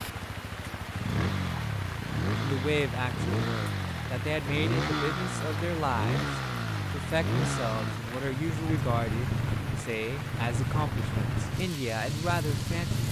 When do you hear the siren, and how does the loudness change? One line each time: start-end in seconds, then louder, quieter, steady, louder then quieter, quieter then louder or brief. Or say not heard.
not heard.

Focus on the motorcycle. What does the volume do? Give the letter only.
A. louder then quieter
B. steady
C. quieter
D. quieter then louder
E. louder
B.